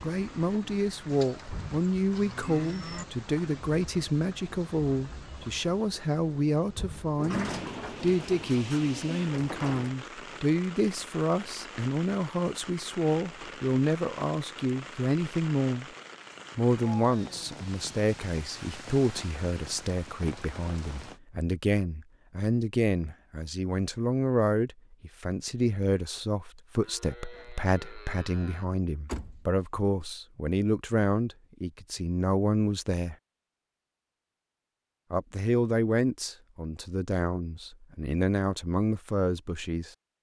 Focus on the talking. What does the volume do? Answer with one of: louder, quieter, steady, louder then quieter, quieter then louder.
steady.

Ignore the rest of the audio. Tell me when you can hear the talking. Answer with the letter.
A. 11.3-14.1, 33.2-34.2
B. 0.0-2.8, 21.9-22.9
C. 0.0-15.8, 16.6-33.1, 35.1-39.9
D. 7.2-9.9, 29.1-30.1
C.